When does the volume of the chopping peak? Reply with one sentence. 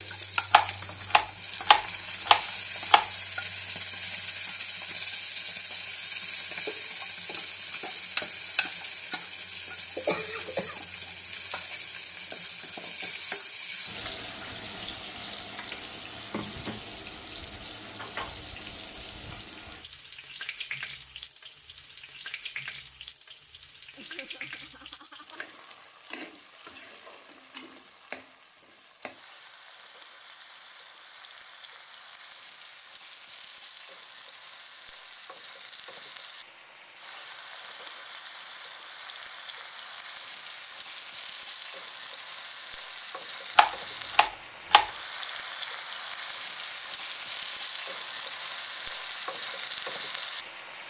The loudest moment of the chopping is at 2 seconds.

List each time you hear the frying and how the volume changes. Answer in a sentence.
You can hear the frying from 0.0 to 50.8 s, getting quieter then louder.